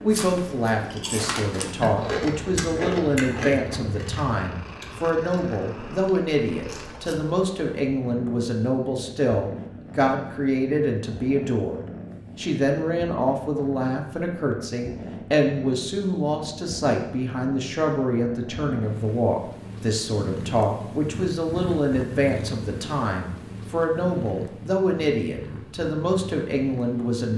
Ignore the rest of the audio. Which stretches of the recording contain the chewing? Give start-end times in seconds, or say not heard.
0.1-7.2.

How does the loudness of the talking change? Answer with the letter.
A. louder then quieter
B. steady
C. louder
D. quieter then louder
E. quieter
B.